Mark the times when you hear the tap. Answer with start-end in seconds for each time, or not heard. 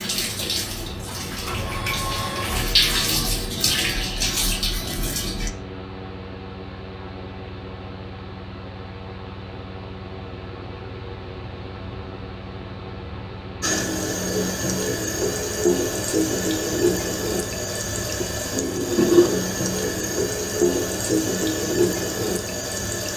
0.0-5.5, 13.6-23.1.